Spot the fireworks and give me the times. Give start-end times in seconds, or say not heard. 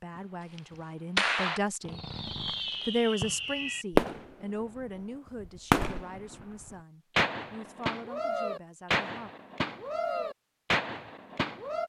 0.6-4.3, 5.4-11.8.